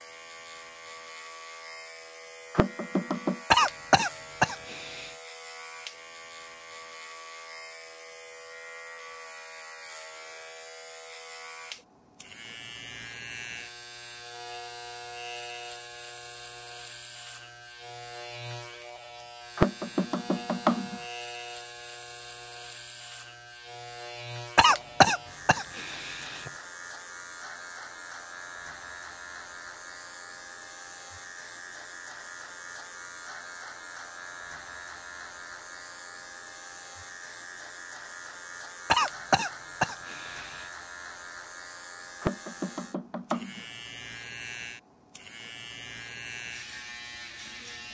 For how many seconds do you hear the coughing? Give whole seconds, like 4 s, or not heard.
5 s.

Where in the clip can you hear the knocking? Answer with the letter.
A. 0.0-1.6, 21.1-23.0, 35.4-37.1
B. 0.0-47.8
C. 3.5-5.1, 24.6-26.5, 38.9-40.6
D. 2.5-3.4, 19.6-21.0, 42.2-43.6
D.